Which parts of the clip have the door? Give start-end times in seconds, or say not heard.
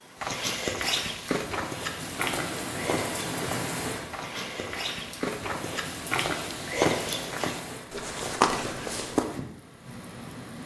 not heard.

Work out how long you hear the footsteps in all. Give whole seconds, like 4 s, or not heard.
9 s.